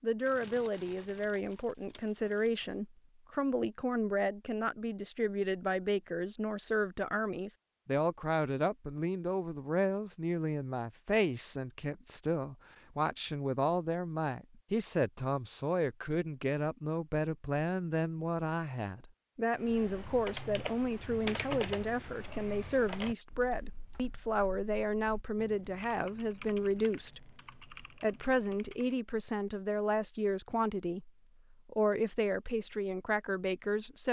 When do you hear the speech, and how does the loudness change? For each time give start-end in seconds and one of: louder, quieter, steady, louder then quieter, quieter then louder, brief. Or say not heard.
0.0-34.0 steady.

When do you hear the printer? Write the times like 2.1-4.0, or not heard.
not heard.